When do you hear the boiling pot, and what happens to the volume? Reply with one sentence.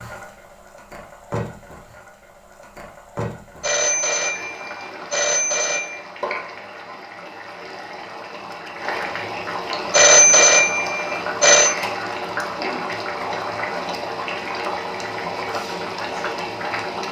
You can hear the boiling pot from 0.0 to 17.0 s, getting louder.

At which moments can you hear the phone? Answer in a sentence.
The phone can be heard from 3.6 to 6.0 s and from 9.9 to 11.8 s.